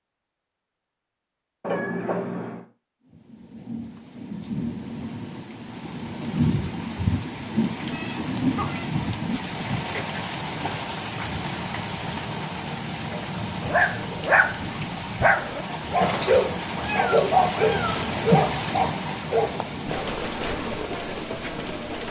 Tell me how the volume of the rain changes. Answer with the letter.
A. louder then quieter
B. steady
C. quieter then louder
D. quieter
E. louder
B.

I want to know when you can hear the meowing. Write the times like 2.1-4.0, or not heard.
1.6-2.6, 7.9-8.9, 16.8-18.6.